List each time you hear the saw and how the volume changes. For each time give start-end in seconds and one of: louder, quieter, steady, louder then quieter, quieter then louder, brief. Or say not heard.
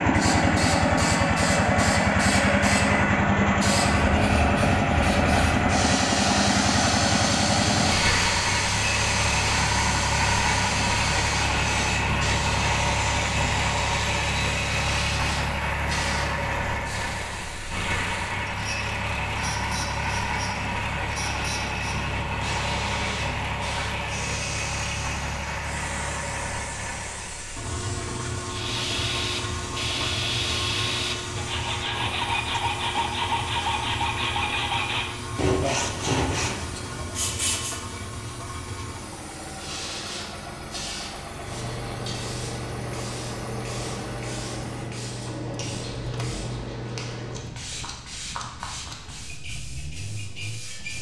28.4-37.8 steady.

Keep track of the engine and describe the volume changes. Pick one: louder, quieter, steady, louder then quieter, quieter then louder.
quieter.